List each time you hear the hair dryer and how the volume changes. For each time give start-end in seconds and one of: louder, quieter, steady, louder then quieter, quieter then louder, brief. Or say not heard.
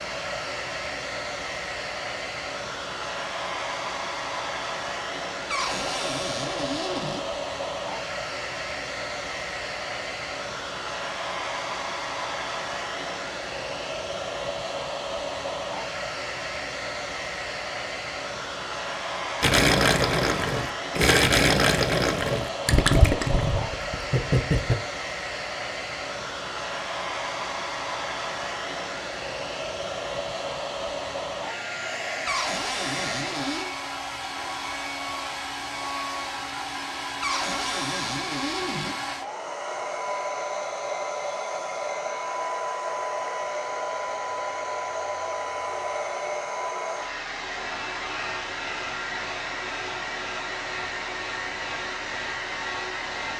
0.0-53.3 steady.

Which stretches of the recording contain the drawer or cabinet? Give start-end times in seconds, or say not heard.
5.5-7.2, 32.2-33.7, 37.2-39.0.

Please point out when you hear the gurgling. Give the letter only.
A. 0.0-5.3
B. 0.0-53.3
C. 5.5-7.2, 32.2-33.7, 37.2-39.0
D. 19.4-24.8
D.